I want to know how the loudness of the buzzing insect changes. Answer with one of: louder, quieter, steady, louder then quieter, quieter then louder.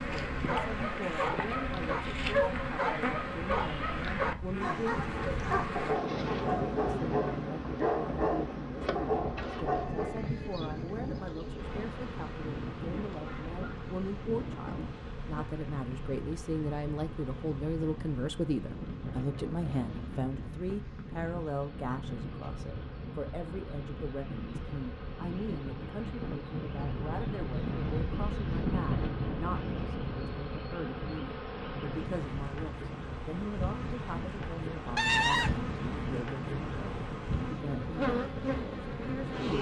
quieter then louder.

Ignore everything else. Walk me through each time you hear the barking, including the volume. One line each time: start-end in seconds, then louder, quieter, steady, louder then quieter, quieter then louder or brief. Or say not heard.
0.3-10.2 steady.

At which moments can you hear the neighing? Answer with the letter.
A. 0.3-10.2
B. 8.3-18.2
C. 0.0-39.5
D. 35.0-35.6
D.